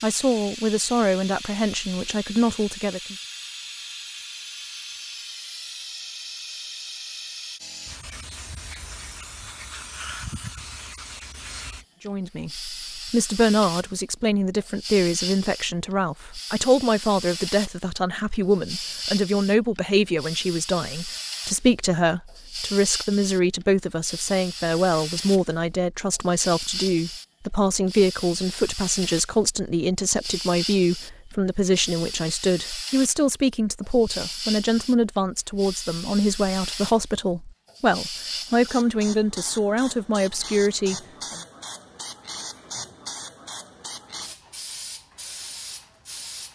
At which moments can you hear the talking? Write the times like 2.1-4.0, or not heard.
0.0-3.1, 12.1-41.4.